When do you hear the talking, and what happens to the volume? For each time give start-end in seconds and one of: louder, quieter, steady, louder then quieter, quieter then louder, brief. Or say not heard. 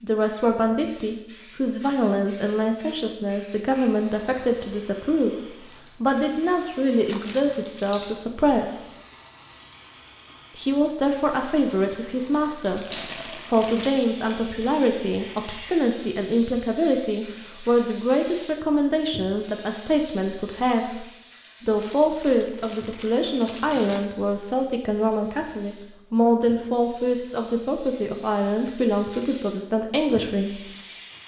0.0-8.8 steady
10.6-30.6 steady.